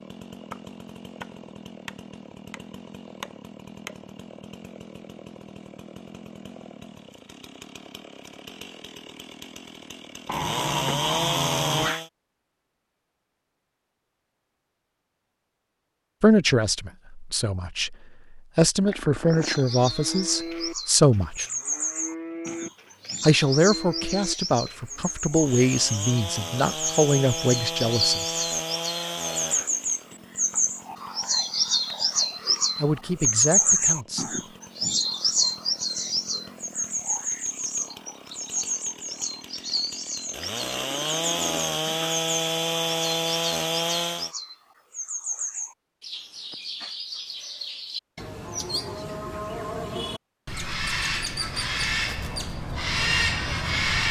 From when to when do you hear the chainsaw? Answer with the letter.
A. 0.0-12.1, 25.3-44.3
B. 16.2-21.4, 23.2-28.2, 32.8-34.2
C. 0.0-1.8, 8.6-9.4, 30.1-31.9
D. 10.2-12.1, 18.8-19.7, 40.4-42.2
A.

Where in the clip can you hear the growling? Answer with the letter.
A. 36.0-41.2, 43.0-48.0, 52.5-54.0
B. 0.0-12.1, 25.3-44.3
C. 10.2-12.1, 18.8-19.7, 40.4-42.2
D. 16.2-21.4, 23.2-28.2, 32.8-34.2
C.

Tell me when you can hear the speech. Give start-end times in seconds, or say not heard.
16.2-21.4, 23.2-28.2, 32.8-34.2.